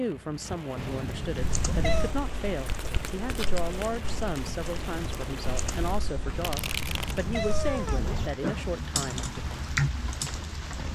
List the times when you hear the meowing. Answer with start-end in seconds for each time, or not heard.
0.8-2.1, 6.2-8.3.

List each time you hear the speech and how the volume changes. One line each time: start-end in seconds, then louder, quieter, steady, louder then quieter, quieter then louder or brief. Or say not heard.
0.0-9.4 steady.